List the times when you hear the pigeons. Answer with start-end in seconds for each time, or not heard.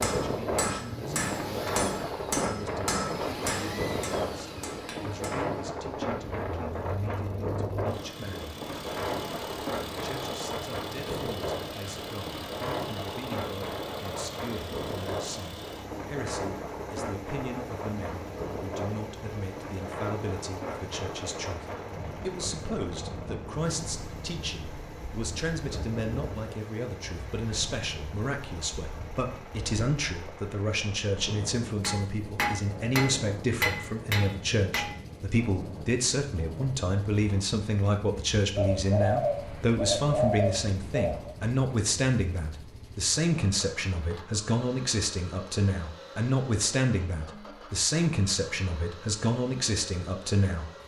38.5-41.4.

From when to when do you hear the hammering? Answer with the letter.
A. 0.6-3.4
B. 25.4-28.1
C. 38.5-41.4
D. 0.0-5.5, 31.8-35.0
D.